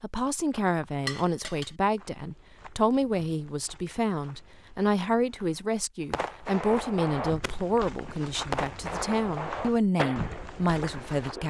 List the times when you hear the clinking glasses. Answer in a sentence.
You can hear the clinking glasses from 1.1 to 1.8 s.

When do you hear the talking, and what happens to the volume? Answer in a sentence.
You can hear the talking from 0.0 to 11.4 s, at a steady volume.